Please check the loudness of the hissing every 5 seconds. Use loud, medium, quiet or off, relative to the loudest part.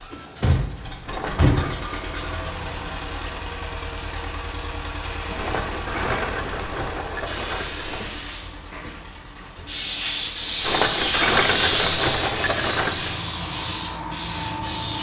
off, medium, loud.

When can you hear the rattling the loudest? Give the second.
11 s.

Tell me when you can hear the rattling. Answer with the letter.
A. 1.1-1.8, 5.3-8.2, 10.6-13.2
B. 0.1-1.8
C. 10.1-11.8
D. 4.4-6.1
A.